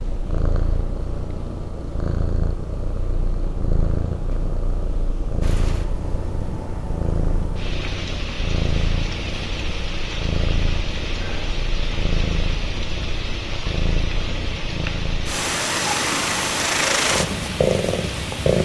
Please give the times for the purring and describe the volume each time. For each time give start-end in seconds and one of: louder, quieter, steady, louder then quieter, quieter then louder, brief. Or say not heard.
0.0-18.5 louder.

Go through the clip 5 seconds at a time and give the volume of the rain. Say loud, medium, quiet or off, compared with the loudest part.
off, loud, loud, loud.